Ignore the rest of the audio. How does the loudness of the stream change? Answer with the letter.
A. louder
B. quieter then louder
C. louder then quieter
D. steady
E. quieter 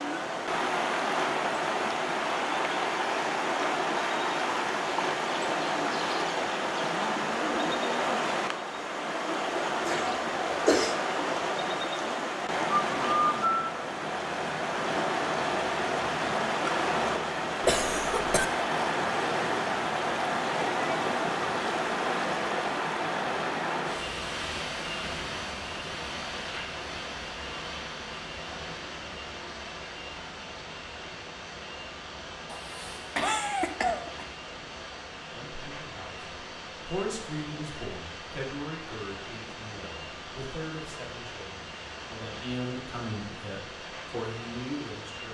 E.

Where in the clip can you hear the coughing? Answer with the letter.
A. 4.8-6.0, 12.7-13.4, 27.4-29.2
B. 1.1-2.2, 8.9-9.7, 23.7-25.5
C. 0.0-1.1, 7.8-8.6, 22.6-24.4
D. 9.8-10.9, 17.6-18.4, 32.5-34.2
D.